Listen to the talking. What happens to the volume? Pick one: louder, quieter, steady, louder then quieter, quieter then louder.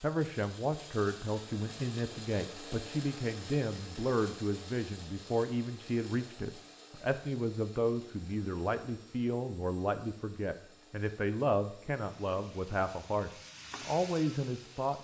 steady.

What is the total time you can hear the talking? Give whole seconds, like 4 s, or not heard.
15 s.